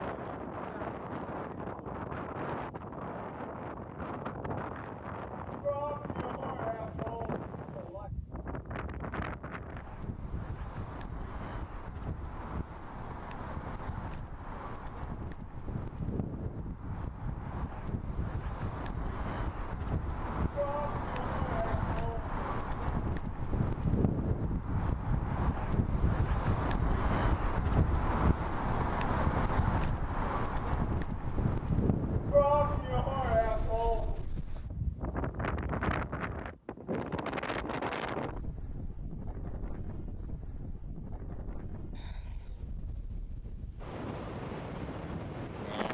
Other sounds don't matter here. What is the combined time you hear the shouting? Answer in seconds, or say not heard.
6 s.